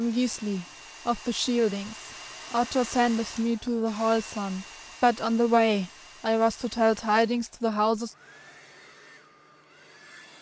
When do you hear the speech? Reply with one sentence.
The speech can be heard from 0.0 to 8.2 s.